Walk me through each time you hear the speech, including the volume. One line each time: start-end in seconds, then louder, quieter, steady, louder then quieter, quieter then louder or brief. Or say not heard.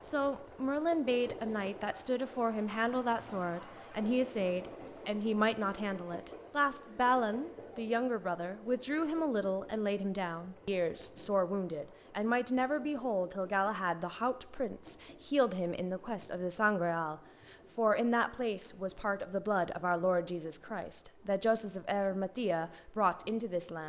0.0-23.8 steady.